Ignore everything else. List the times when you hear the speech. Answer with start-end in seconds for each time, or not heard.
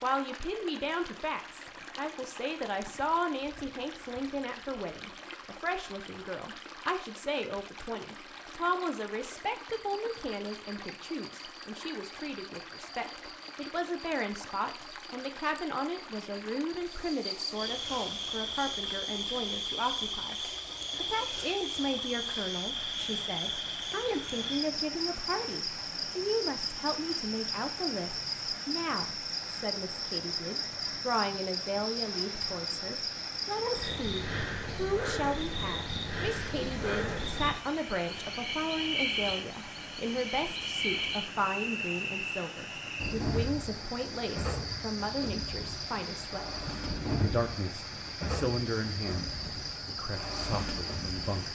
0.0-51.4.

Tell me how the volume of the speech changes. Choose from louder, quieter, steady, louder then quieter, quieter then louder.
steady.